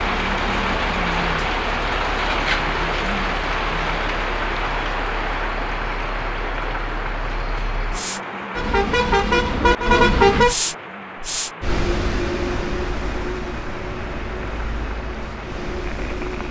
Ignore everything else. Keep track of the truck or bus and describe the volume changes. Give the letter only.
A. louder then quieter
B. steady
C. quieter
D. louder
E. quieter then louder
A.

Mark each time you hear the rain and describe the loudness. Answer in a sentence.
The rain can be heard from 0.0 to 16.4 s, getting quieter.